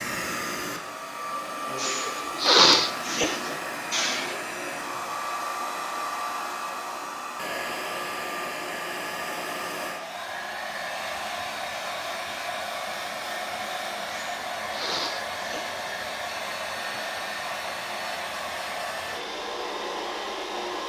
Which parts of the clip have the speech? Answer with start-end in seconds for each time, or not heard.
not heard.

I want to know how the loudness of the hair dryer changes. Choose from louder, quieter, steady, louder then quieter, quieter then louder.
steady.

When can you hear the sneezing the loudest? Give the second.
3 s.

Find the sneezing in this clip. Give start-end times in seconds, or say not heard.
1.8-4.4, 14.1-15.8.